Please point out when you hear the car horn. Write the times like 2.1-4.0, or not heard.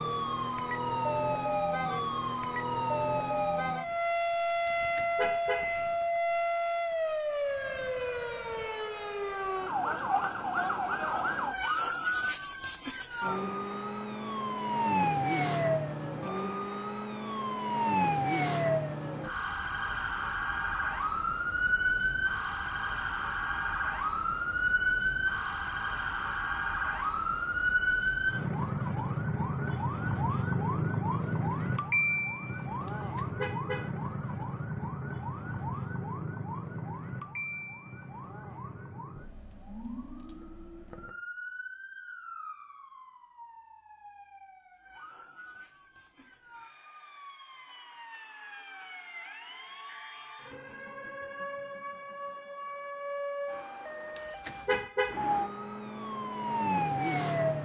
4.7-5.7, 32.9-33.9, 54.1-55.2.